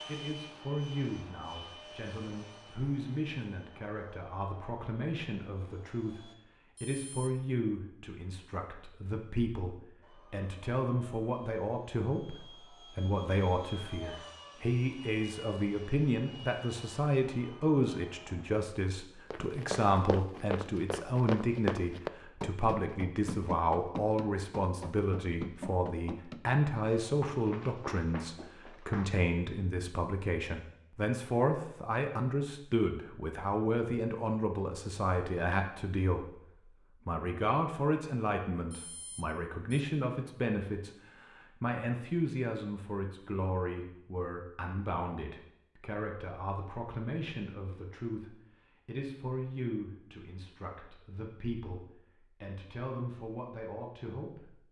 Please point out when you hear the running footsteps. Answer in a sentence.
The running footsteps can be heard from 19.3 to 29.2 s.